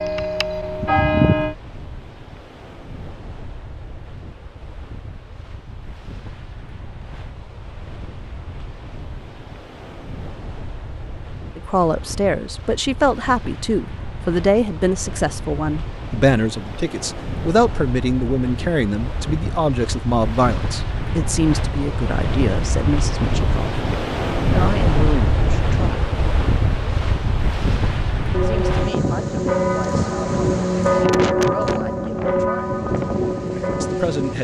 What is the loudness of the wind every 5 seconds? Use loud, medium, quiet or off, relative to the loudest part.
quiet, quiet, quiet, medium, loud, loud, loud.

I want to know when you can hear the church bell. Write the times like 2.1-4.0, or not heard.
0.0-1.6, 28.3-34.3.